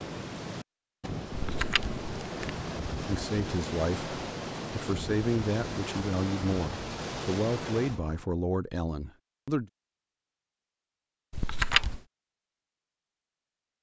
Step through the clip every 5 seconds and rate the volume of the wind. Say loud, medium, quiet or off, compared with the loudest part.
loud, loud, off.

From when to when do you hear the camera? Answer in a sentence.
The camera can be heard from 1.3 to 2.6 s and from 11.3 to 12.0 s.